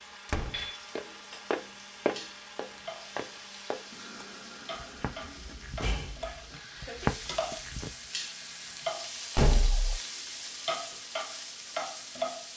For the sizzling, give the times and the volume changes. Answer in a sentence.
The sizzling can be heard from 0.0 to 12.5 s, getting louder.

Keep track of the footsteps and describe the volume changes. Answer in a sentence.
The volume of the footsteps goes down, then up.